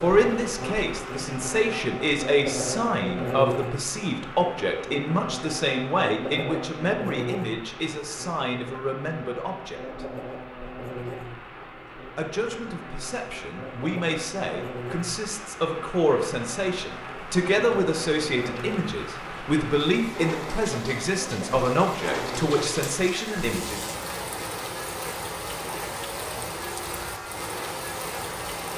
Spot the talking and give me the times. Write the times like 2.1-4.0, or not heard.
0.0-10.1, 12.2-23.8.